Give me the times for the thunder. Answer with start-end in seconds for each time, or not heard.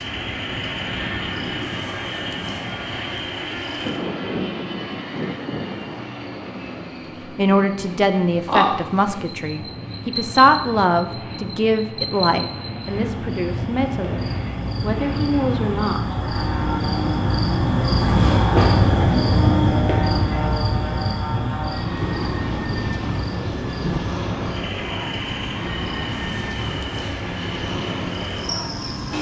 3.8-6.0, 21.9-24.0.